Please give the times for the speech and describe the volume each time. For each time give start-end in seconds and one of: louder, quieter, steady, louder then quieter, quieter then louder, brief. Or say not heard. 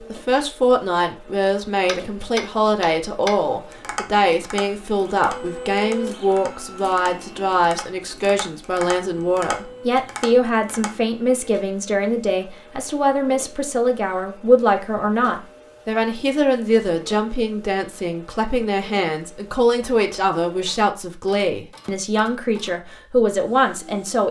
0.1-24.2 steady.